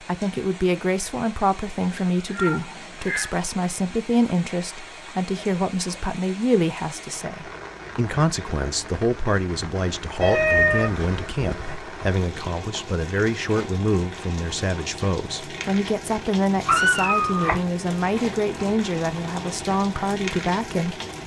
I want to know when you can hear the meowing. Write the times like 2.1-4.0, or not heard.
2.2-3.3, 10.2-11.8, 16.6-17.6.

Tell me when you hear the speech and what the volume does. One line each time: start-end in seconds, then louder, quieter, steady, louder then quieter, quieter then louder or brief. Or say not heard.
0.0-21.0 steady.